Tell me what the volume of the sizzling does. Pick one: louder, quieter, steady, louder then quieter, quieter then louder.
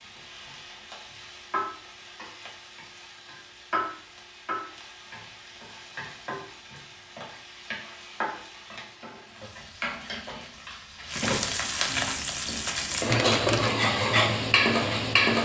louder.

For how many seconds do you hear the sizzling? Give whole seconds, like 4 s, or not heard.
15 s.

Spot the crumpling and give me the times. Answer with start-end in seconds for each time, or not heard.
13.1-13.8.